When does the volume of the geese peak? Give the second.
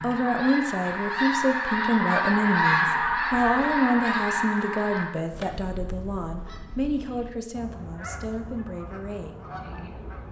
3 s.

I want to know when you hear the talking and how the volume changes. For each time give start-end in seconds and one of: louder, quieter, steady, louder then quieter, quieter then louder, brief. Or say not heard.
0.0-9.4 quieter.